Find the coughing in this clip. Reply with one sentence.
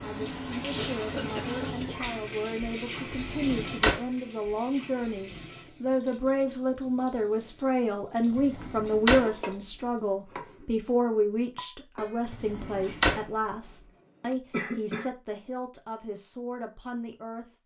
You can hear the coughing from 0.8 to 1.9 s and from 14.5 to 15.1 s.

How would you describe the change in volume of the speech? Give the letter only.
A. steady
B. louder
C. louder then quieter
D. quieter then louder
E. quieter
C.